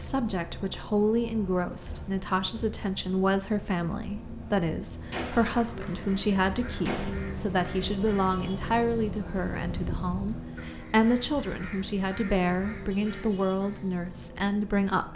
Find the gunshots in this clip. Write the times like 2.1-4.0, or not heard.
5.1-7.1.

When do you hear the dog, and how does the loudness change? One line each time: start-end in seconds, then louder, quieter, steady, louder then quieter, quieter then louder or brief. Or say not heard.
not heard.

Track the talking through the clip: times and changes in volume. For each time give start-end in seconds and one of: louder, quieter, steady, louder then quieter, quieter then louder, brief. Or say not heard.
0.0-15.1 steady.